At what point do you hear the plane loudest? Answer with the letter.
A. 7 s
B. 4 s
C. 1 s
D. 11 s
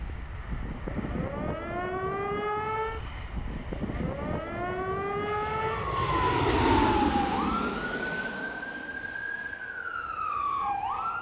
A.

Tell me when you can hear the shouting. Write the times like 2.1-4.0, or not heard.
not heard.